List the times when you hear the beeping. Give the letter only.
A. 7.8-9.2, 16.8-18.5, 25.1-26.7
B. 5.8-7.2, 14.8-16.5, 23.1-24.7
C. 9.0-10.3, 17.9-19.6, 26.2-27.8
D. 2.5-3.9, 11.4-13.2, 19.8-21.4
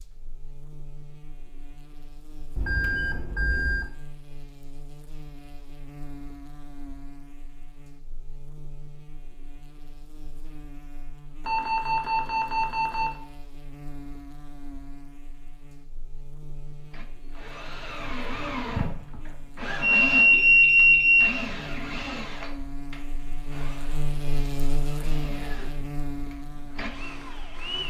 D.